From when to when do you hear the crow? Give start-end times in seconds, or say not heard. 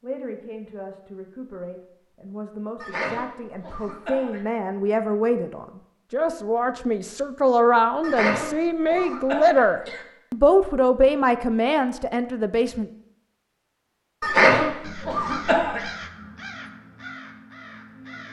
14.8-18.2.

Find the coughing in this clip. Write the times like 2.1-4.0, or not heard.
2.8-4.5, 8.0-10.1, 14.2-15.8.